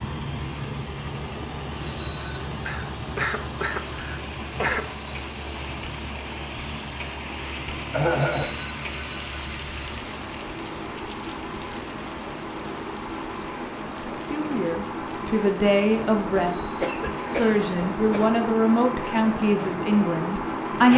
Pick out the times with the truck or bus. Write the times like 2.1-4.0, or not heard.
0.0-20.9.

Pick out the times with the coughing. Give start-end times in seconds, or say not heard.
2.6-4.9, 7.9-8.6, 16.8-18.4.